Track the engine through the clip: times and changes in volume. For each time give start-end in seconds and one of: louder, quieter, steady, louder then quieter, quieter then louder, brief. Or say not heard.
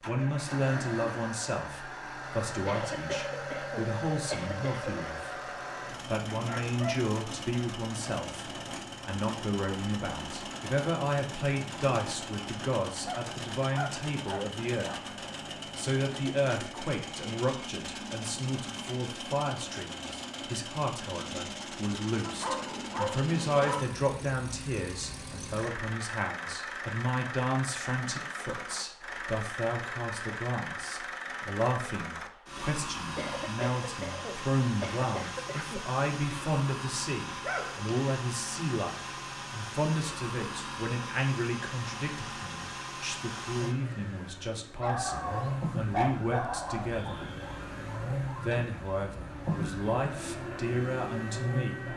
0.0-51.9 steady.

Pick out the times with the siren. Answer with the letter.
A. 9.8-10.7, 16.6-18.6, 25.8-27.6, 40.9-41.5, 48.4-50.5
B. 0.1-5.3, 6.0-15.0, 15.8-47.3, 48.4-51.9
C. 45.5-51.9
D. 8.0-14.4
C.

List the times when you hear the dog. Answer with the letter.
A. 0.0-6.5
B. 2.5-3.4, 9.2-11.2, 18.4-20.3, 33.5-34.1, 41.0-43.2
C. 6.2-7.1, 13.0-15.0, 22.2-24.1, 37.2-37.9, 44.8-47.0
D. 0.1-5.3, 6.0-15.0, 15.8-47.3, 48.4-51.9
C.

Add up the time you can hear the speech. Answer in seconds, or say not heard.
49 s.